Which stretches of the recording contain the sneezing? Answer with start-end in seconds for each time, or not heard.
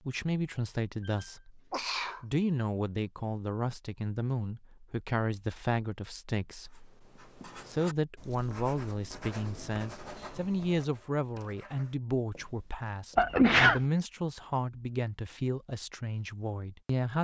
1.1-2.2, 13.2-13.8.